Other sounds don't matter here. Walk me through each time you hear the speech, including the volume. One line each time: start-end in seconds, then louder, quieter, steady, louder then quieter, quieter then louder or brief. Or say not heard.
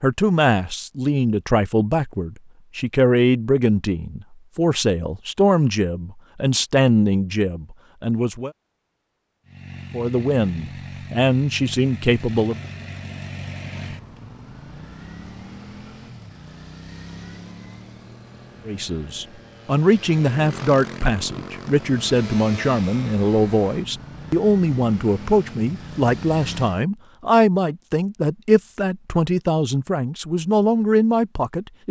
0.0-8.5 steady
9.9-12.6 brief
18.6-31.8 steady.